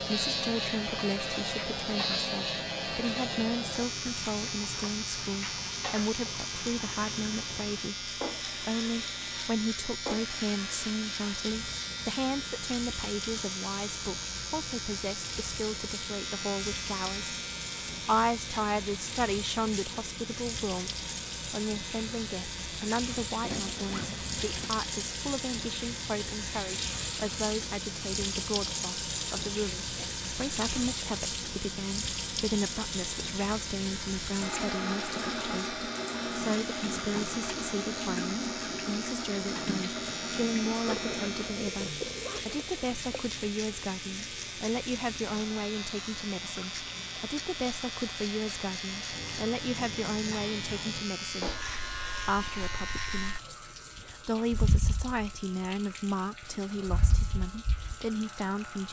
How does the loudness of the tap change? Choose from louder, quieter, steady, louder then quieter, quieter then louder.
louder then quieter.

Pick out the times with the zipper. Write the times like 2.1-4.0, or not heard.
23.4-24.7, 40.9-43.2.